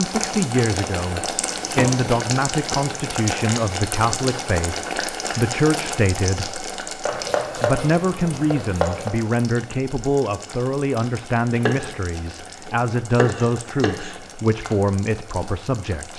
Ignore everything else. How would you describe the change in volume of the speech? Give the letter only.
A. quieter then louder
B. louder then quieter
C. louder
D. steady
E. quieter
D.